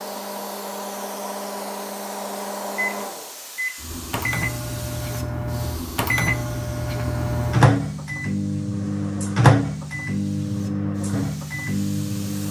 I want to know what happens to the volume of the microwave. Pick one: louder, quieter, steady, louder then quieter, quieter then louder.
louder then quieter.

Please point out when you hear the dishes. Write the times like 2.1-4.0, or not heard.
not heard.